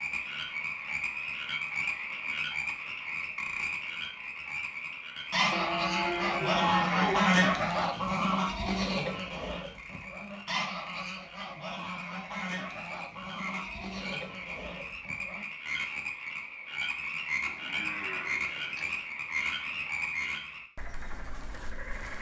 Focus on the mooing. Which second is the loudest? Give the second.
7 s.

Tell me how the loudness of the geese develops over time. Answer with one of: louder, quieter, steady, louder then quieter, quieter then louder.
quieter.